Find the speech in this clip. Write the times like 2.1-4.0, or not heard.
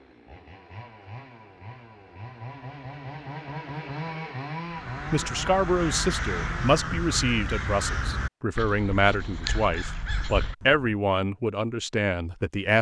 5.1-12.7.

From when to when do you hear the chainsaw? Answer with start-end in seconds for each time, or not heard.
0.0-6.8.